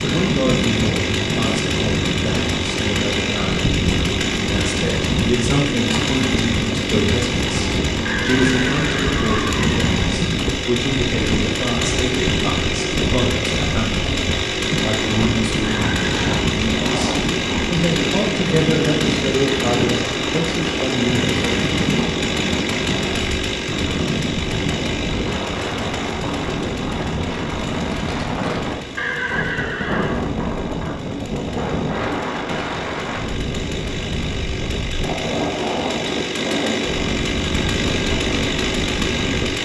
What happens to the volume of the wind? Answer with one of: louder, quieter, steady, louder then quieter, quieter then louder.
steady.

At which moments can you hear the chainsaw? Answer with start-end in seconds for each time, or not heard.
0.0-39.6.